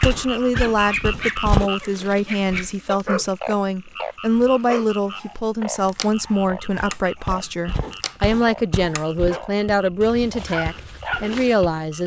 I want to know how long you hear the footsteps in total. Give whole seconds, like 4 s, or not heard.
7 s.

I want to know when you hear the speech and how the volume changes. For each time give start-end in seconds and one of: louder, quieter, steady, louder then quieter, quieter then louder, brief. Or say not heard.
0.0-12.0 steady.